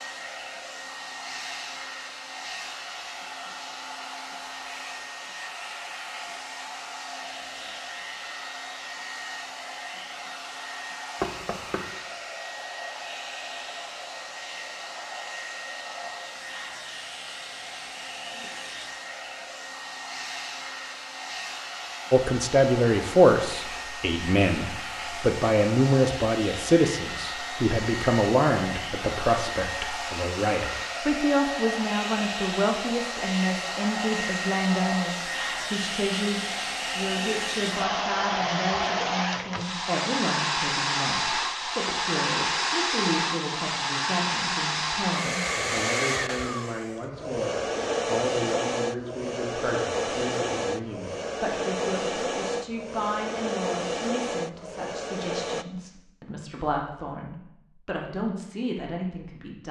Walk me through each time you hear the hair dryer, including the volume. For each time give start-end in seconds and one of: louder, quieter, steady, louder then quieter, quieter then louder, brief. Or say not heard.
0.0-55.6 louder.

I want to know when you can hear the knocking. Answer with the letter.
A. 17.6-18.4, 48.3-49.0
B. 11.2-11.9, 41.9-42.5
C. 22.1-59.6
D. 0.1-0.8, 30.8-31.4
B.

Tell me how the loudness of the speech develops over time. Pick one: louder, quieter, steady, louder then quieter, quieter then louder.
quieter.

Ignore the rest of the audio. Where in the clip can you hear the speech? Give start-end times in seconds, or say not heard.
22.1-59.6.